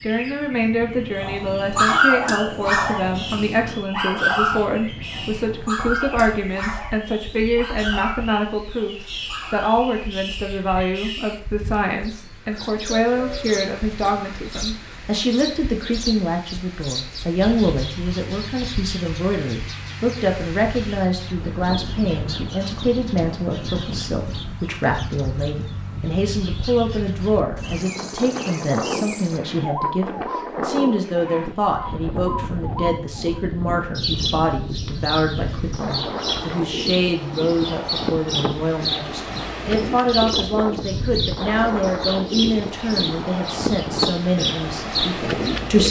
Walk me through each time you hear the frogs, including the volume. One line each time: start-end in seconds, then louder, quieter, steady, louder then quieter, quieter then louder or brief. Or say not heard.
not heard.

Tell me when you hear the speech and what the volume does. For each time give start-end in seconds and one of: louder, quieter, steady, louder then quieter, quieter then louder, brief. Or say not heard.
0.0-45.8 steady.